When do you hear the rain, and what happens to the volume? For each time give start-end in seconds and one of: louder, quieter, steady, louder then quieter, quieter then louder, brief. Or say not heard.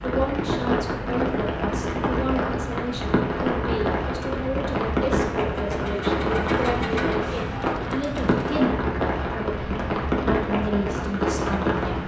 0.0-12.0 steady.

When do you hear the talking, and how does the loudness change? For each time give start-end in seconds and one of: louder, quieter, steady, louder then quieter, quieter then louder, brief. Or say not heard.
0.0-12.0 steady.